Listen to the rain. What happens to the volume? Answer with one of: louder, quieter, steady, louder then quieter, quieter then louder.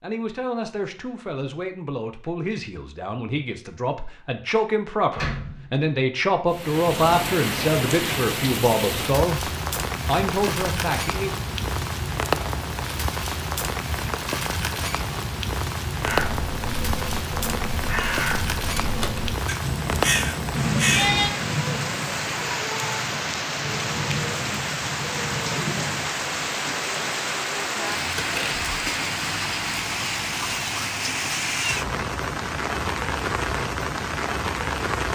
steady.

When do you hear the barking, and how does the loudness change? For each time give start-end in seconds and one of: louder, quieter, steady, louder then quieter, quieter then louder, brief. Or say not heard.
not heard.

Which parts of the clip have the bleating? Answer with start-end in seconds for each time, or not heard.
19.6-21.3.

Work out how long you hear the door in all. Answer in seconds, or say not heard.
2 s.